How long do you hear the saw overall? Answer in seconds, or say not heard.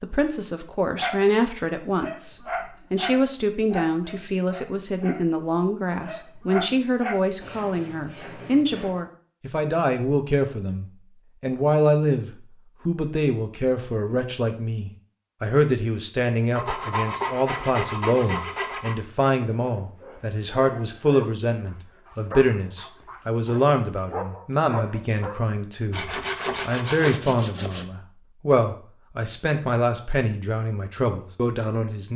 6 s.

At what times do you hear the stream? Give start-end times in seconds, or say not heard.
not heard.